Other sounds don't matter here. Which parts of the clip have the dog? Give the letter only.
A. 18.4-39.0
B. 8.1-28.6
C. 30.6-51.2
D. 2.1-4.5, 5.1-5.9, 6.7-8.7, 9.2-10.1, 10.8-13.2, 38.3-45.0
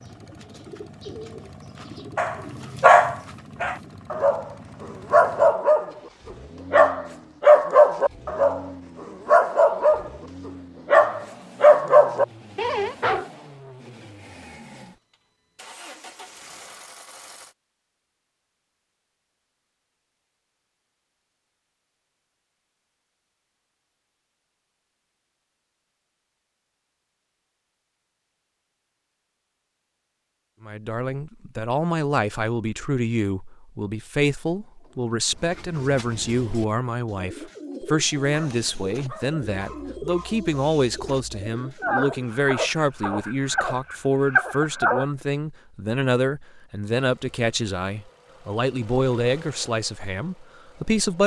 D.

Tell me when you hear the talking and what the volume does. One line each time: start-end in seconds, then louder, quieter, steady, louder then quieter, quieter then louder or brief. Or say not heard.
30.6-51.2 steady.